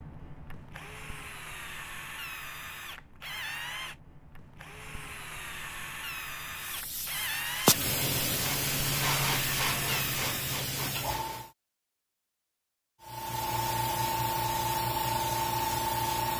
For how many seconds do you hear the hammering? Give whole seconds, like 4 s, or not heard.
not heard.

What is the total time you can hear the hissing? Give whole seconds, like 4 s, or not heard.
8 s.